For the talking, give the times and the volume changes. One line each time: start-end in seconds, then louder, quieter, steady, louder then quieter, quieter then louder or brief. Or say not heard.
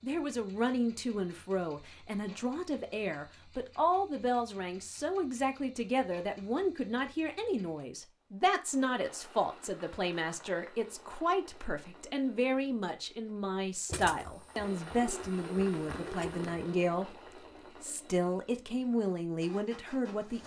0.0-17.1 steady
17.8-20.4 brief.